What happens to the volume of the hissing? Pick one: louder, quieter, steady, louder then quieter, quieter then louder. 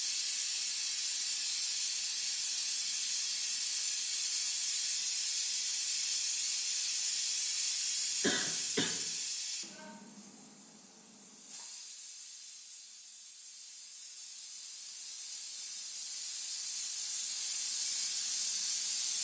quieter then louder.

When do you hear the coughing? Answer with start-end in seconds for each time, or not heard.
8.2-8.9.